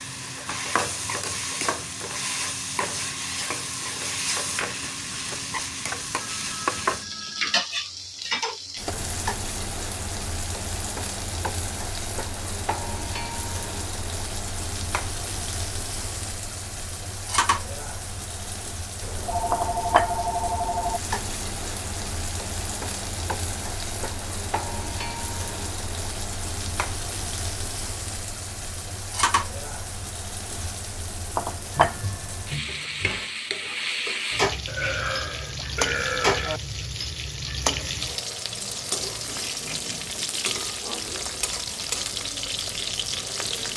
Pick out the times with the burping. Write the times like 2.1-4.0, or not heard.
34.6-36.6.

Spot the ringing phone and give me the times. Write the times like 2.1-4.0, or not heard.
6.2-7.6, 19.0-21.0, 31.7-33.4.